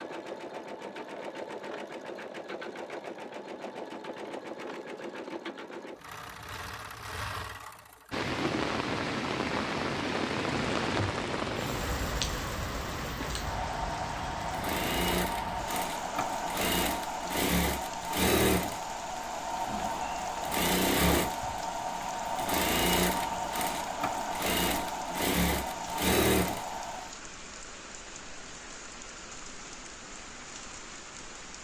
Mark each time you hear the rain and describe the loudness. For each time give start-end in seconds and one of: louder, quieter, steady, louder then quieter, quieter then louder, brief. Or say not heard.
8.1-31.5 quieter.